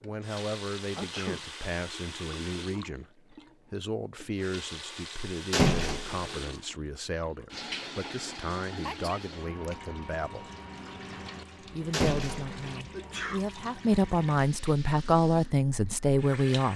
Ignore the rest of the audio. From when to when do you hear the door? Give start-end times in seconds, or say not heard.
5.5-6.3, 11.9-12.6.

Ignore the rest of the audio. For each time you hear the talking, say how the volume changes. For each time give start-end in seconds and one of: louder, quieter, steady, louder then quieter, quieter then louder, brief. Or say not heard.
0.0-10.5 steady
11.6-16.7 louder.